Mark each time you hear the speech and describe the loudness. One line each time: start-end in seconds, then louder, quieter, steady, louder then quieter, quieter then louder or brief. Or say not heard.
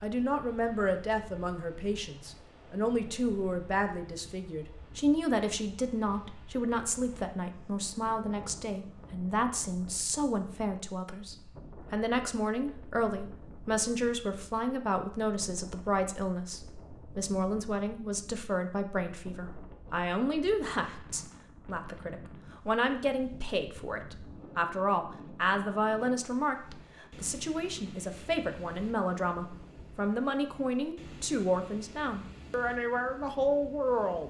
0.0-34.2 steady.